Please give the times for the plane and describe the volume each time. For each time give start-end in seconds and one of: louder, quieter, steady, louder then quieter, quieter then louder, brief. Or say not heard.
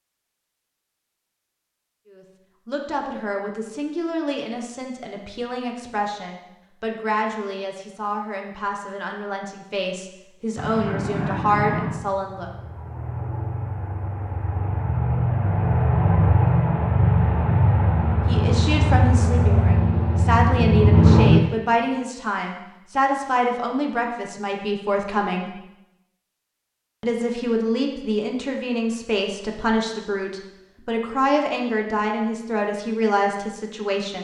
10.6-21.4 louder.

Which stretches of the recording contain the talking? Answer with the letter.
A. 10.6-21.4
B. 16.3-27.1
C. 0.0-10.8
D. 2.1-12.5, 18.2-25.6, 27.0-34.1
D.